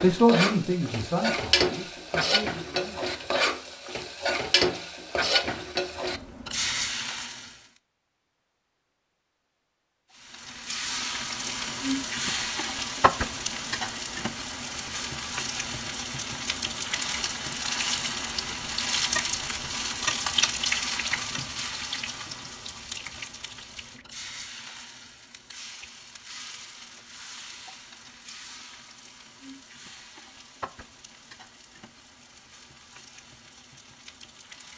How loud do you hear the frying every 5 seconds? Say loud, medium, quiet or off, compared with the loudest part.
loud, loud, loud, loud, loud, quiet, quiet.